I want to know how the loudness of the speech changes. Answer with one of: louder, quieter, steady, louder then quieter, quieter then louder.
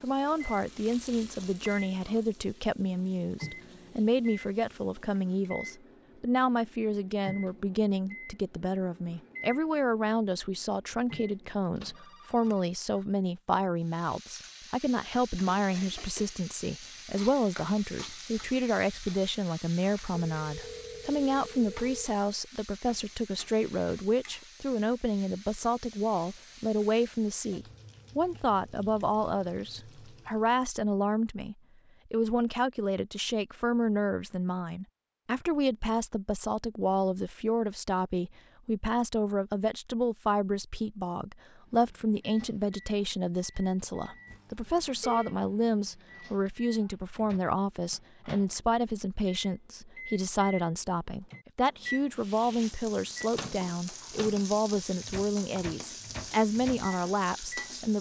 steady.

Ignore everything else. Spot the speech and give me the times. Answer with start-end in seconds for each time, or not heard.
0.0-57.9.